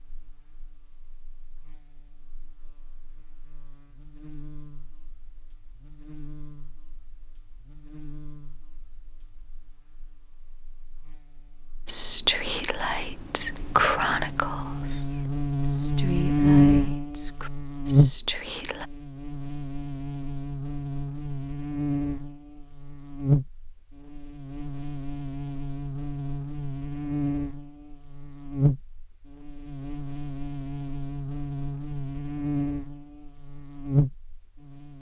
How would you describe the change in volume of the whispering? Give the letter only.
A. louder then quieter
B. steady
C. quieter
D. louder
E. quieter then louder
E.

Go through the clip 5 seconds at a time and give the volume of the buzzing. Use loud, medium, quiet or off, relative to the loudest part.
quiet, quiet, quiet, loud, medium, medium, medium.